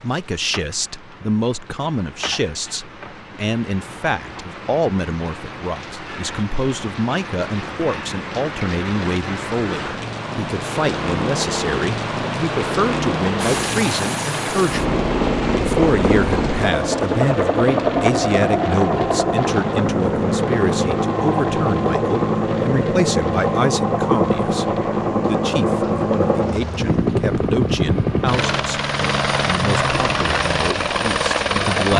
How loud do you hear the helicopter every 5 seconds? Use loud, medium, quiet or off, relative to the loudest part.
off, off, medium, loud, loud, loud, loud.